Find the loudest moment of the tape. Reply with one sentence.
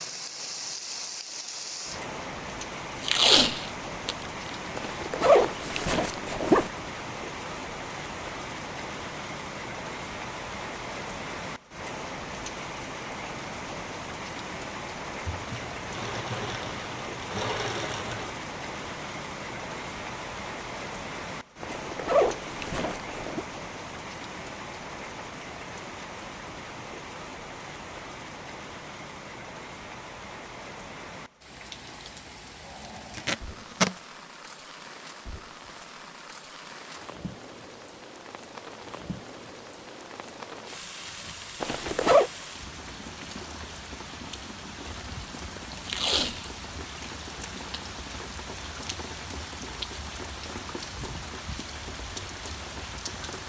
The volume of the tape peaks at 3 seconds.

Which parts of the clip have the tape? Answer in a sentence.
You can hear the tape from 3.0 to 4.5 s, from 33.1 to 34.0 s and from 45.8 to 46.5 s.